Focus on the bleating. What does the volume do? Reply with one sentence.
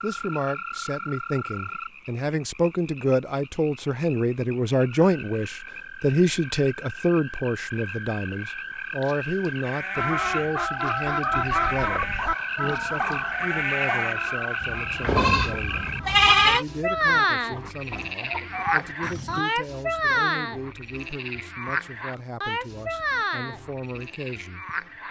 The volume of the bleating goes up.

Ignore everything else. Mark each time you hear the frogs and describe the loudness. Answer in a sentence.
The frogs can be heard from 0.0 to 25.0 s, getting louder.